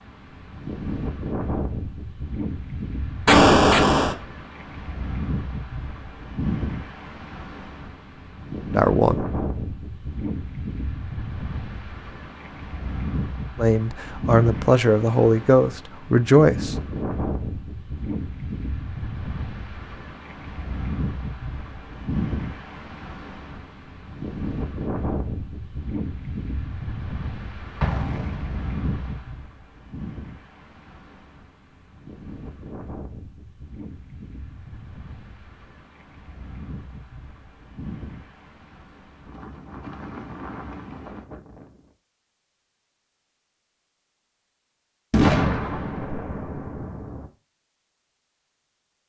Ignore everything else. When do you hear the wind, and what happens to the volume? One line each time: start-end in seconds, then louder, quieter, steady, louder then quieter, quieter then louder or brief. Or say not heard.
0.0-41.9 quieter.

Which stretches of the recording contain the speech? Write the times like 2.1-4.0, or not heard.
8.7-9.2, 13.6-16.8.